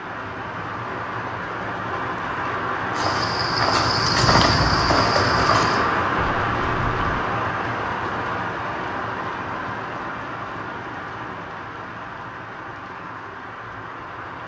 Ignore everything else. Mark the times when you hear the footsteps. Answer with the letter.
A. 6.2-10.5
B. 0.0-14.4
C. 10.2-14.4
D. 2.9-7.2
D.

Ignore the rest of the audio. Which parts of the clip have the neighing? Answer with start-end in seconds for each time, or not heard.
not heard.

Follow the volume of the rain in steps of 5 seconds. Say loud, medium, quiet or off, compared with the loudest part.
loud, loud, medium.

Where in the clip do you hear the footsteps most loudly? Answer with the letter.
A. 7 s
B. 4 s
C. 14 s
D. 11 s
B.